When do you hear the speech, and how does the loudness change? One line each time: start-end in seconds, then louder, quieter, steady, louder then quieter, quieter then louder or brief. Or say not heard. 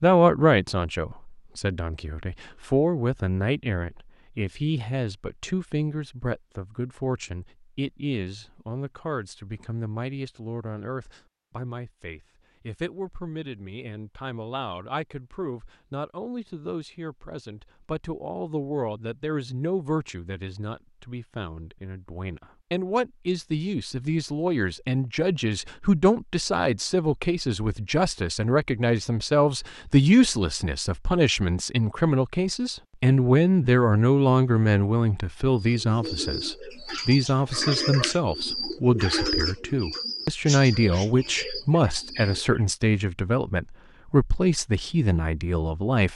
0.0-46.1 quieter then louder.